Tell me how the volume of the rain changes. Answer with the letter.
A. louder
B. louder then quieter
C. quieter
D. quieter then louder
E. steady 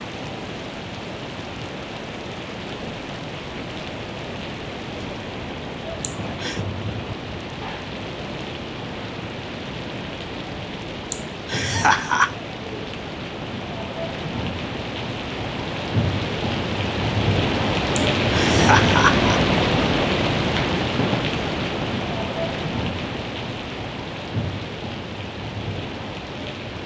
B.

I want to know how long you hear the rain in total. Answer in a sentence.
You can hear the rain for 27 seconds altogether.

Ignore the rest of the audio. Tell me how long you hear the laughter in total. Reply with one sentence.
The laughter can be heard for 3 seconds in total.